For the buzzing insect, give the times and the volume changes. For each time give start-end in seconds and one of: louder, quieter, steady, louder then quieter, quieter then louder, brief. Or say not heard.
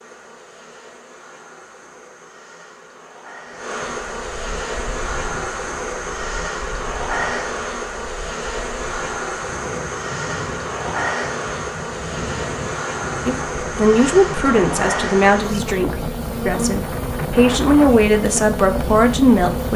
0.0-19.7 louder.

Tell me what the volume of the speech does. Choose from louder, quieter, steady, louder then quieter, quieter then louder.
quieter then louder.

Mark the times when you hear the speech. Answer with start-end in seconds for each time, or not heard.
13.2-19.7.